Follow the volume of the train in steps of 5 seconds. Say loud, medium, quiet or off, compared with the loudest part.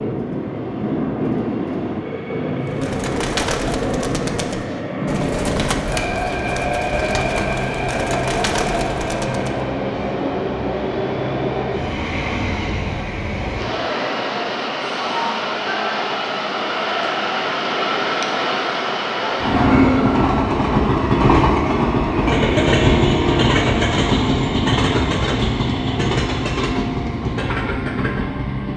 medium, medium, medium, loud, loud, medium.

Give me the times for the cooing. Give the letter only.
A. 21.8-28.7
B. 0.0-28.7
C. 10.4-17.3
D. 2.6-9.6
D.